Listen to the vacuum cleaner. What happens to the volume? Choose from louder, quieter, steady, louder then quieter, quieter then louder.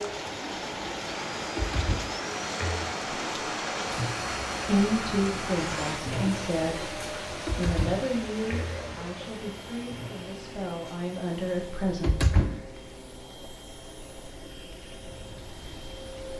quieter.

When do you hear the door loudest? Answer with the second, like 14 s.
12 s.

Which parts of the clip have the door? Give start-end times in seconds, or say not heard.
1.6-2.9, 7.5-8.8, 11.8-12.7.